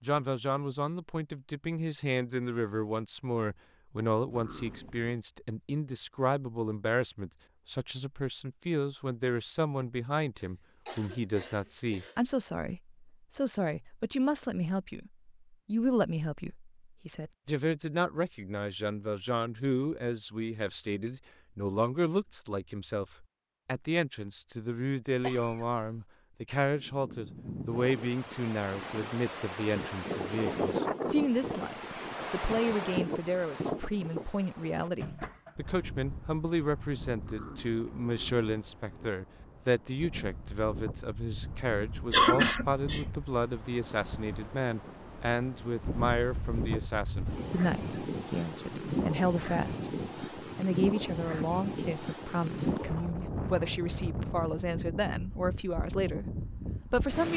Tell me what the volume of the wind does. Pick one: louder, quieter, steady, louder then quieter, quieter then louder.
quieter then louder.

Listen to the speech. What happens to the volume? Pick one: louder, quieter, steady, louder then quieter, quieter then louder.
steady.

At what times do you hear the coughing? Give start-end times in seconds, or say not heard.
10.3-12.2, 25.2-25.9, 42.1-43.0.